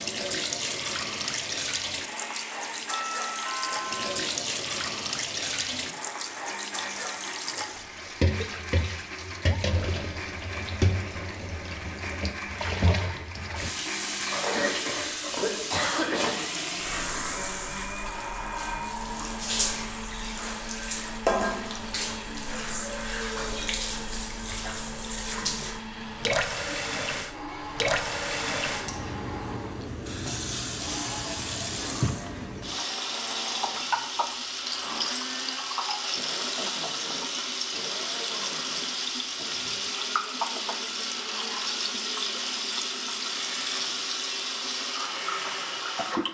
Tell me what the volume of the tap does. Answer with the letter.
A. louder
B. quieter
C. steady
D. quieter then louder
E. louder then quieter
C.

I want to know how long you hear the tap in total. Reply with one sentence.
You can hear the tap for 46 seconds altogether.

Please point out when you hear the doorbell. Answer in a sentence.
The doorbell can be heard from 2.9 to 4.2 s.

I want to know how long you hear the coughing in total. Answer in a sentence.
You can hear the coughing for 2 seconds altogether.